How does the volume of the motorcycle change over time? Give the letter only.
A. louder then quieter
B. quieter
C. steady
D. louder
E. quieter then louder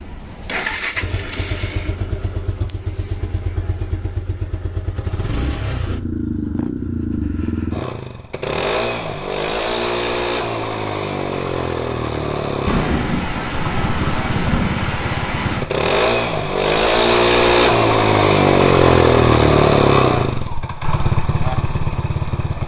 D.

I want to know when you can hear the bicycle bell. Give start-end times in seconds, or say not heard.
not heard.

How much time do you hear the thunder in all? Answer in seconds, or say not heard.
3 s.